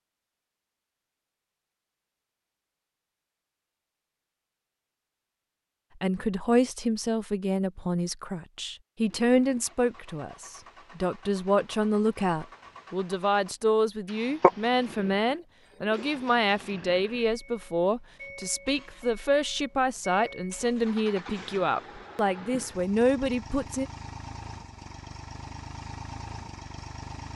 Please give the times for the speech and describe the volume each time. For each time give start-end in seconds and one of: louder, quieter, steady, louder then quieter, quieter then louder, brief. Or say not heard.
6.0-23.9 steady.